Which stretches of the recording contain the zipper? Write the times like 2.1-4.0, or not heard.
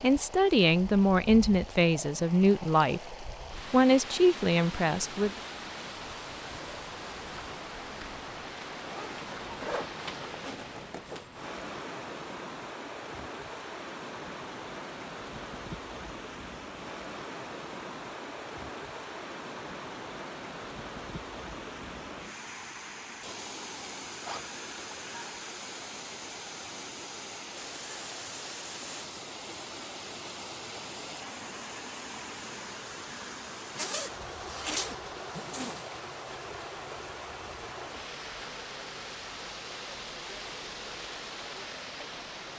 8.9-11.2, 24.2-25.1, 33.8-35.9.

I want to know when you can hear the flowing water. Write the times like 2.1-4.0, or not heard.
0.0-42.5.